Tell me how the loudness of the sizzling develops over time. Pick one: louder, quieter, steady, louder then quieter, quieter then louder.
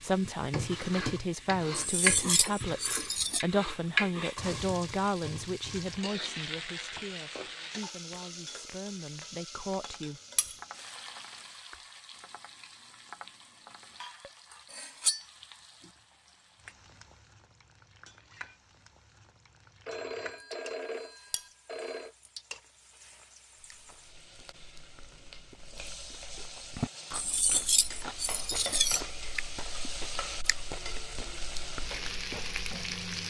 quieter then louder.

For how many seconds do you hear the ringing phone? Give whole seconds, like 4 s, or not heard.
2 s.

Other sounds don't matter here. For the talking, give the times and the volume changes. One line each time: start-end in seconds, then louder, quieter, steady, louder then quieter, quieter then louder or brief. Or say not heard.
0.0-10.2 quieter.